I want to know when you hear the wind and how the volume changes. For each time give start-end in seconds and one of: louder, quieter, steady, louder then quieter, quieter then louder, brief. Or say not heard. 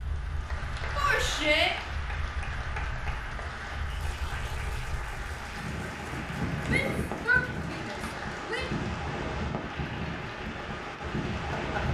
0.0-11.8 louder.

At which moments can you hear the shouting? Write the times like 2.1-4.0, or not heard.
0.9-1.8, 6.7-8.7.